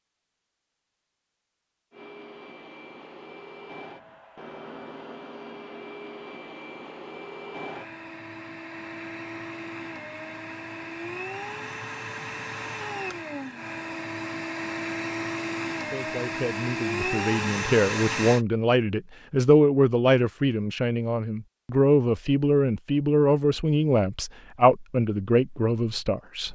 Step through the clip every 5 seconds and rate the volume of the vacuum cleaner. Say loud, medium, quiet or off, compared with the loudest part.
quiet, medium, medium, loud, off, off.